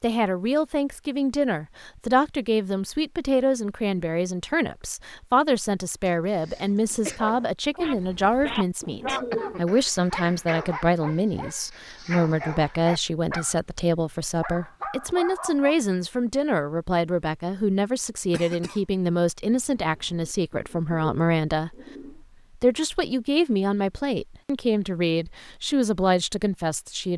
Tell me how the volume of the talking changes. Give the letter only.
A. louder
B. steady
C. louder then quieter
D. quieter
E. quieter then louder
B.